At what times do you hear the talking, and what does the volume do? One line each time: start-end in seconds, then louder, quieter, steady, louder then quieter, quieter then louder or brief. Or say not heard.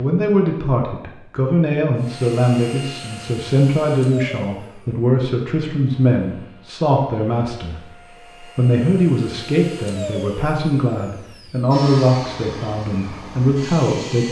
0.0-14.2 steady.